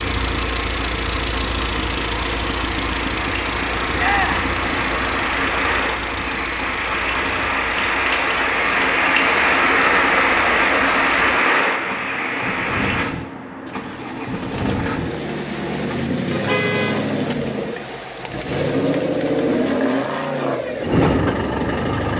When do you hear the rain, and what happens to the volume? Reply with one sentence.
You can hear the rain from 0.0 to 13.1 s, getting louder.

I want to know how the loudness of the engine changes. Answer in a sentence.
The volume of the engine goes down, then up.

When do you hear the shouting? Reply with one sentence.
You can hear the shouting from 4.0 to 4.5 s.